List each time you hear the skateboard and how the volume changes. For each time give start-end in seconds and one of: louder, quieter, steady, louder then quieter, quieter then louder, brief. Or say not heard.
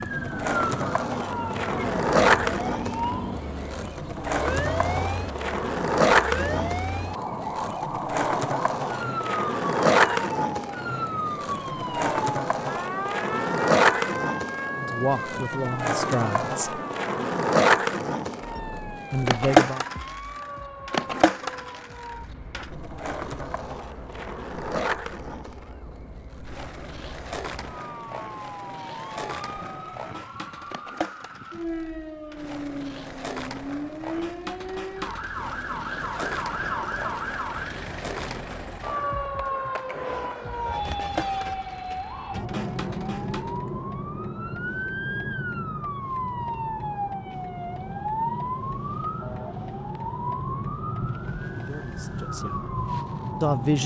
0.0-43.6 quieter.